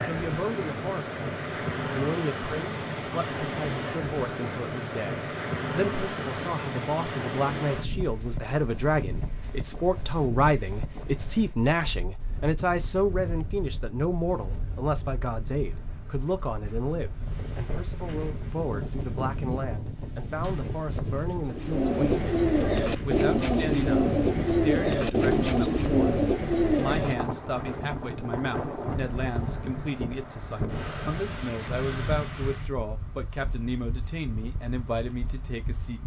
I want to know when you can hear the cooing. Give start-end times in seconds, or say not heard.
21.4-27.4.